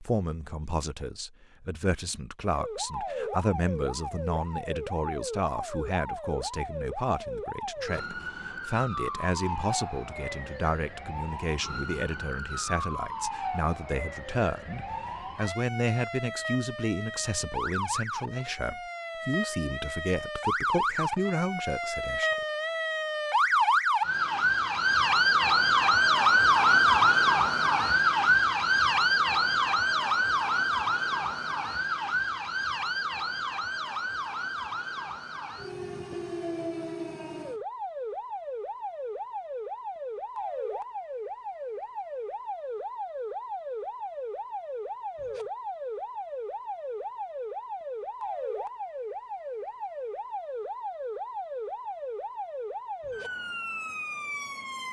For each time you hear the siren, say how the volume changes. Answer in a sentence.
The siren can be heard from 2.5 to 54.8 s, getting louder then quieter.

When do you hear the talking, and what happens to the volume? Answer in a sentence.
You can hear the talking from 0.0 to 22.3 s, at a steady volume.